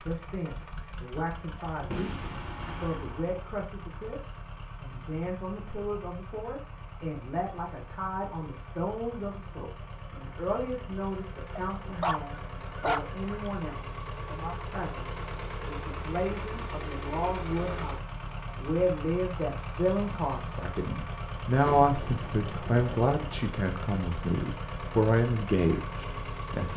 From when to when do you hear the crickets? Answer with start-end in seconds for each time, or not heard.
not heard.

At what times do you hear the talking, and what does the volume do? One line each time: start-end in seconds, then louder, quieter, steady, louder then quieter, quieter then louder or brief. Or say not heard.
0.0-26.7 louder.